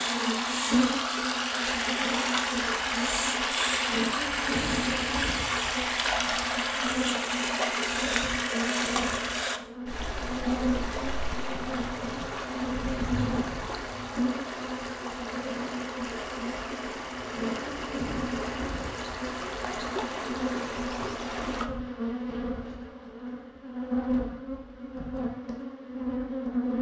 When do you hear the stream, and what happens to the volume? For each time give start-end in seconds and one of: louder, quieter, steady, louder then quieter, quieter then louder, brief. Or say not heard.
0.0-21.6 quieter.